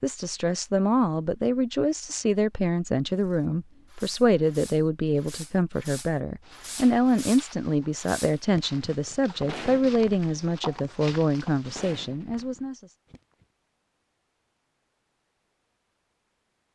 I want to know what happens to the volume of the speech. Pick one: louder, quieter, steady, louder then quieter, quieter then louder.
steady.